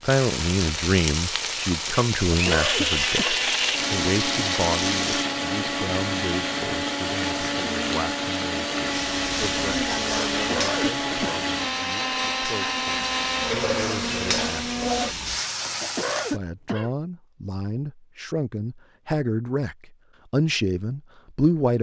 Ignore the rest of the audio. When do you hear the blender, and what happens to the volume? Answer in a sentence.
The blender can be heard from 1.9 to 15.2 s, at a steady volume.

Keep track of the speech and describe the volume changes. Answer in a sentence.
The volume of the speech goes down, then up.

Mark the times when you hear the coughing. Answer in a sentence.
You can hear the coughing from 2.3 to 3.4 s, from 10.3 to 11.4 s and from 15.8 to 16.9 s.